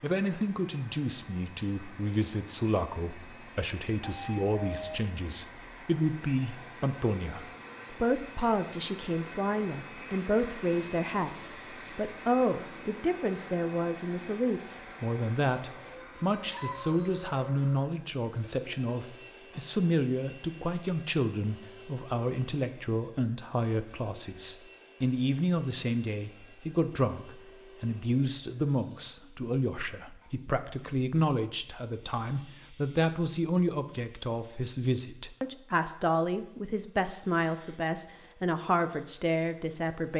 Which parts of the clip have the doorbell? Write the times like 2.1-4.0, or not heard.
4.0-5.0.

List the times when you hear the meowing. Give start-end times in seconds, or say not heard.
16.4-17.2.